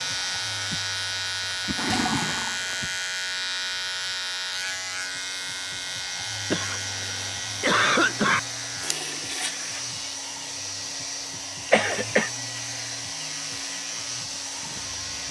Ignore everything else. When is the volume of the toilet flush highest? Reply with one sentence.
The volume of the toilet flush peaks at 2 seconds.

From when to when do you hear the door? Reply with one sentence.
The door can't be heard in this clip.